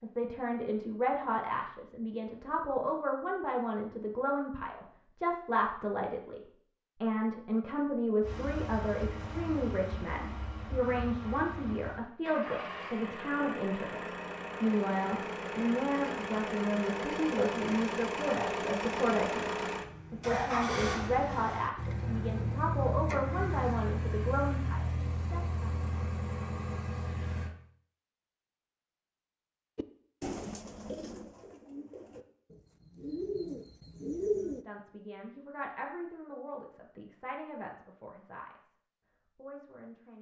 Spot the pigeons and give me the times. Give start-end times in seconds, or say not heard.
29.8-34.6.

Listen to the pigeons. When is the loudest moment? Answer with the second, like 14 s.
34 s.